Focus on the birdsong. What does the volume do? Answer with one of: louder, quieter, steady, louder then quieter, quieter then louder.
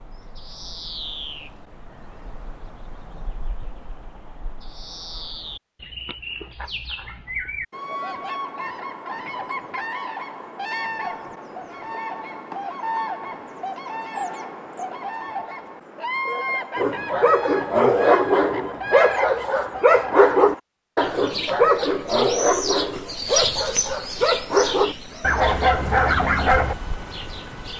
louder.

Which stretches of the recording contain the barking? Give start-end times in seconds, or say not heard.
16.8-26.8.